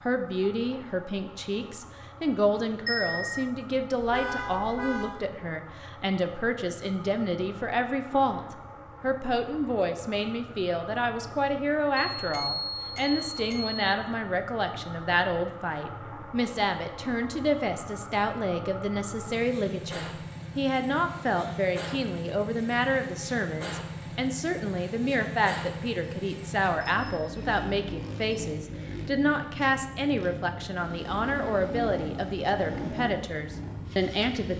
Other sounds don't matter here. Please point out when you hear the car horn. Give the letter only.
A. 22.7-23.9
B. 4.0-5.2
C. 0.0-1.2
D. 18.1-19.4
B.